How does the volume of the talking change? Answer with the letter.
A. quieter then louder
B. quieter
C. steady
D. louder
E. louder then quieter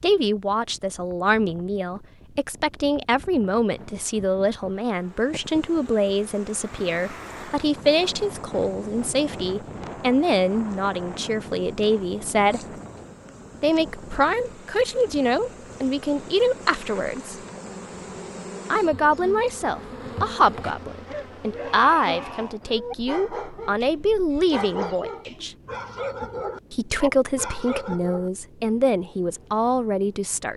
C.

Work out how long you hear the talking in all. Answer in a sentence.
You can hear the talking for 27 seconds altogether.